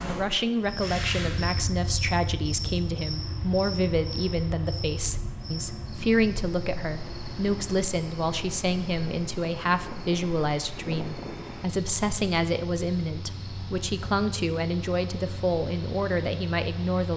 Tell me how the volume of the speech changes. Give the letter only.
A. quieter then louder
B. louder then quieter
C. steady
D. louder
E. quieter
C.